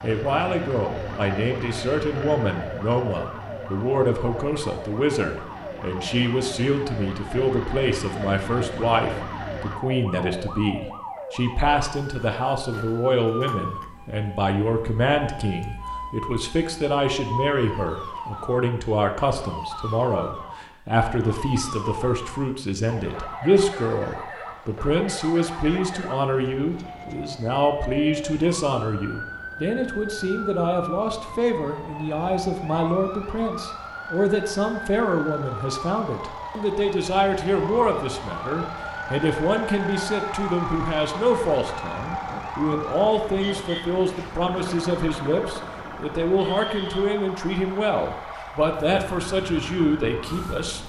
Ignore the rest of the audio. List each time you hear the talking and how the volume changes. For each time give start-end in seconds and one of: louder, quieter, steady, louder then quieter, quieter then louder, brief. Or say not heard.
0.0-50.8 steady.